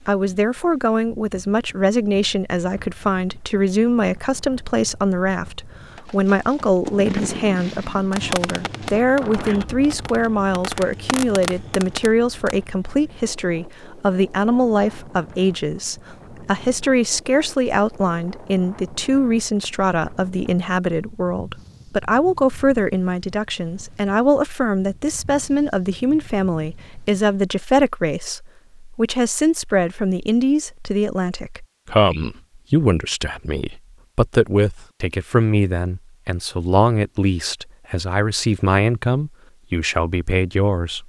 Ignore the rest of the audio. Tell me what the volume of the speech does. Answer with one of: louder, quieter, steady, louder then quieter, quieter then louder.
steady.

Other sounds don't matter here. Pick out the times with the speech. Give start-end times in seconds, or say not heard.
0.1-41.0.